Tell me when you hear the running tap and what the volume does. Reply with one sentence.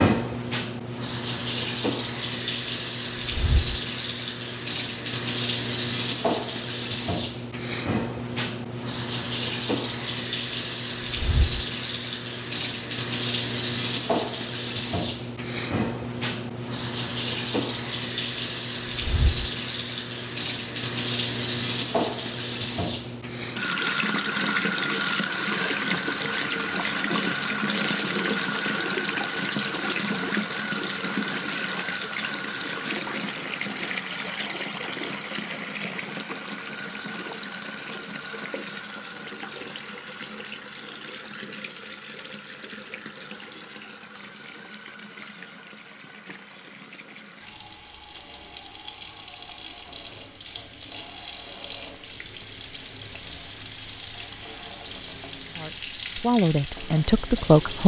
The running tap can be heard from 0.0 to 57.8 s, getting quieter.